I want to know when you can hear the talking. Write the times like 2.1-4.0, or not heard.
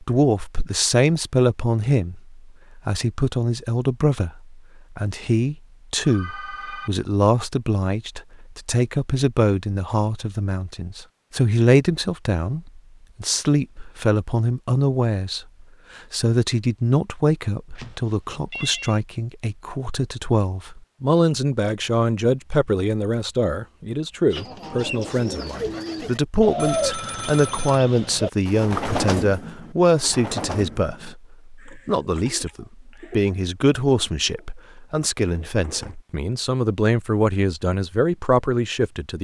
0.0-39.2.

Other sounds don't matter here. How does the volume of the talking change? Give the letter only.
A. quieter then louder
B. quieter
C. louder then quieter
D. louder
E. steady
E.